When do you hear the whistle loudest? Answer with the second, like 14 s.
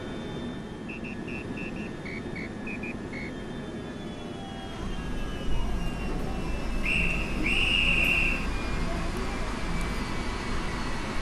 8 s.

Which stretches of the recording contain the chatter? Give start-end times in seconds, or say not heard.
4.7-11.0.